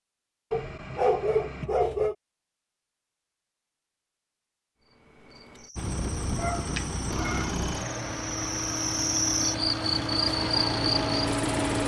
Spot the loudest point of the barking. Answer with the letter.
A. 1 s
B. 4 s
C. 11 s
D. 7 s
A.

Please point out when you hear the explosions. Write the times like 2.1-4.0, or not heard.
not heard.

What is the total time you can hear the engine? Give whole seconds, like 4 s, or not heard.
6 s.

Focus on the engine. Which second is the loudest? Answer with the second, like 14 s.
11 s.